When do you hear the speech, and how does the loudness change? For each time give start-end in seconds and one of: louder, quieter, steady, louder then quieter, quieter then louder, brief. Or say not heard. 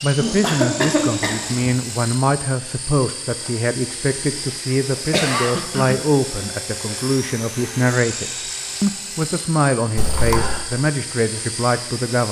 0.0-12.2 steady.